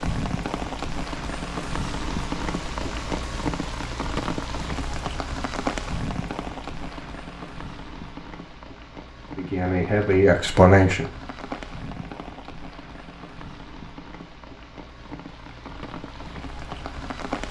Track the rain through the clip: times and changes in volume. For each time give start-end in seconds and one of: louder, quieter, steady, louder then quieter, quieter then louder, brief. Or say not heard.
0.0-17.4 quieter.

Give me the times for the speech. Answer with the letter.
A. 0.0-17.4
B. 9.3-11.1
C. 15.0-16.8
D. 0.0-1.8
B.